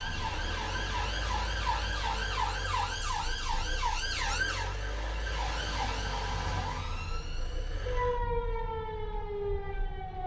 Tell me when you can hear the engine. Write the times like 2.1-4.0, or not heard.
0.1-8.2.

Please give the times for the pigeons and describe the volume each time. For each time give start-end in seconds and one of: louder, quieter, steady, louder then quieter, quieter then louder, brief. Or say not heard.
not heard.